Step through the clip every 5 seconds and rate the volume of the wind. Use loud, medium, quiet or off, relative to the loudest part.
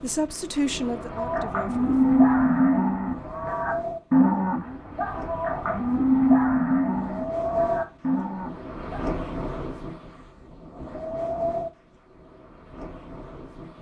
medium, loud, loud.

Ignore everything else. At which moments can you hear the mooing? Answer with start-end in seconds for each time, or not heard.
1.1-9.1.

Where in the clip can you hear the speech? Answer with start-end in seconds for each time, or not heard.
0.0-2.1.